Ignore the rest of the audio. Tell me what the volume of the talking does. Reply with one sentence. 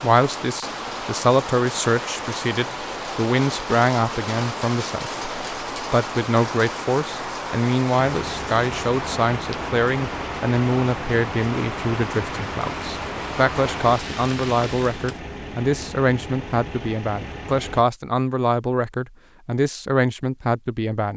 The loudness of the talking stays about the same.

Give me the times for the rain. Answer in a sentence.
The rain can be heard from 0.0 to 15.2 s.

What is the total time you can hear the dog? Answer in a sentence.
The dog can't be heard in this clip.